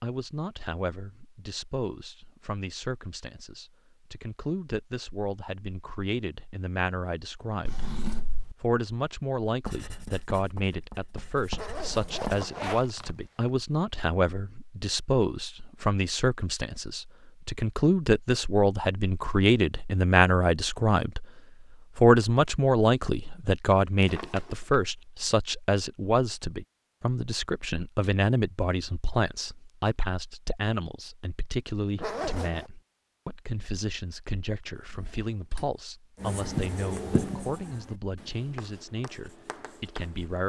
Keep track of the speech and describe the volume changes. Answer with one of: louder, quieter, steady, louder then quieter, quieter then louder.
louder then quieter.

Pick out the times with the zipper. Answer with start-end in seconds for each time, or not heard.
11.6-13.5, 31.9-32.7.